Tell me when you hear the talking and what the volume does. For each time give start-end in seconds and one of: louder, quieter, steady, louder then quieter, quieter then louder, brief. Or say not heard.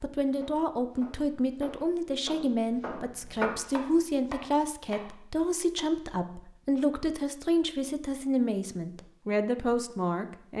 0.0-10.5 steady.